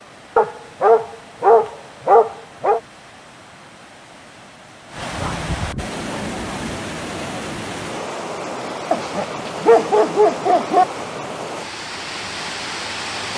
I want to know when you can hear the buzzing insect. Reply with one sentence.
The buzzing insect can't be heard in this clip.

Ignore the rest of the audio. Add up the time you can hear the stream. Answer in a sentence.
You can hear the stream for 13 seconds altogether.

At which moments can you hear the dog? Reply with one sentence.
You can hear the dog from 0.3 to 2.8 s, from 5.0 to 6.8 s and from 8.9 to 10.8 s.